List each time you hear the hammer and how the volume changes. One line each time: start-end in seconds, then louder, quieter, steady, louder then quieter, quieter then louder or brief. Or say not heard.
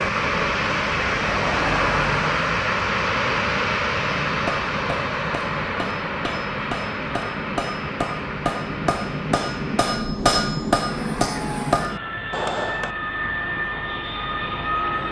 4.2-12.9 louder.